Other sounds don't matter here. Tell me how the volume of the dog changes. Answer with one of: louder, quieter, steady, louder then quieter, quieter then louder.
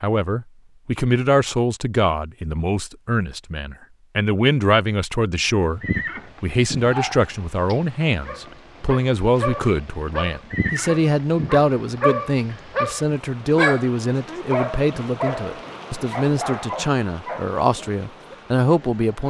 louder then quieter.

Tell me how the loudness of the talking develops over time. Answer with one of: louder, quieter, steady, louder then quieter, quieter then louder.
steady.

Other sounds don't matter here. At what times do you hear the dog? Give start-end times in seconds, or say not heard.
6.8-18.4.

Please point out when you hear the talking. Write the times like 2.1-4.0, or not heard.
0.0-5.8, 6.4-19.2.